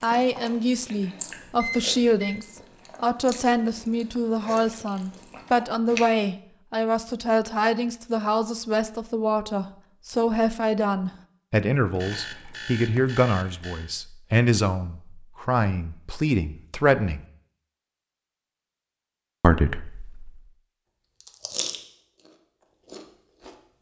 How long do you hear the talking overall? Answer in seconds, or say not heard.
18 s.